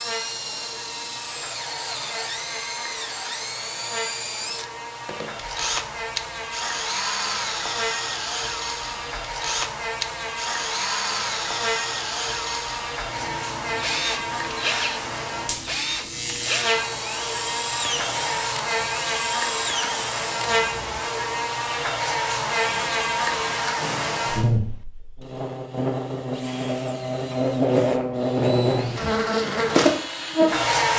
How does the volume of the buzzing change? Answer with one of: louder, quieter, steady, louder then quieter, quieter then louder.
louder.